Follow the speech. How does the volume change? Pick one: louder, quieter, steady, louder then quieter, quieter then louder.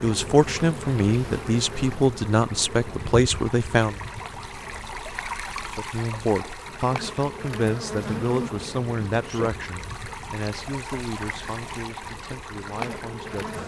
quieter.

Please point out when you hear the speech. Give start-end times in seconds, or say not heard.
0.0-4.0, 5.7-13.6.